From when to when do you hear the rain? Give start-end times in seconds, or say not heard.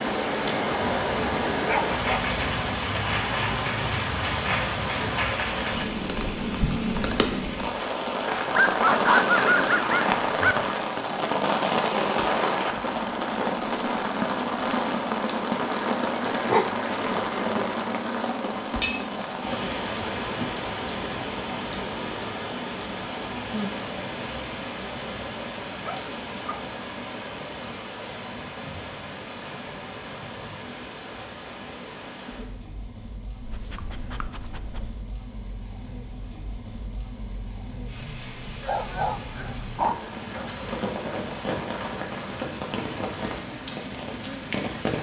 0.0-44.9.